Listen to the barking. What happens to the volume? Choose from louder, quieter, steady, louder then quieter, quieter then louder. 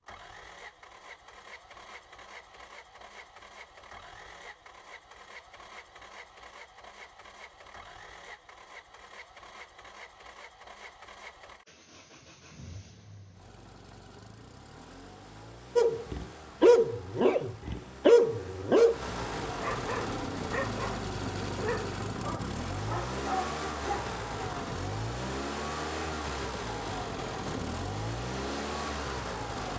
quieter.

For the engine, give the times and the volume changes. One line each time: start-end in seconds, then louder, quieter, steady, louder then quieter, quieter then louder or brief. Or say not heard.
0.0-29.7 louder.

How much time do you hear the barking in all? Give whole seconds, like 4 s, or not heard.
8 s.